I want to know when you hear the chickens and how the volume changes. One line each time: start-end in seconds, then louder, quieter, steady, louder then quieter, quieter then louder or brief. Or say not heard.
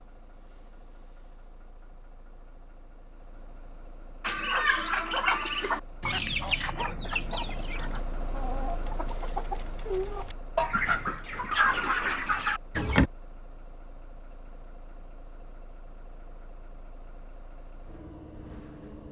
4.2-13.1 quieter then louder.